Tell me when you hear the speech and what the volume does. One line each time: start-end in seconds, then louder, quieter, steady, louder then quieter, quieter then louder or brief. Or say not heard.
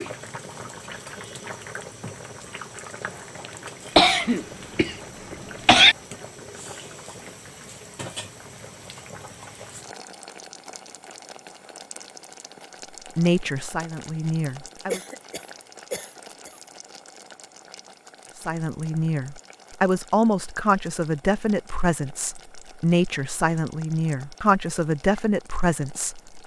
13.2-15.0 brief
18.4-26.4 steady.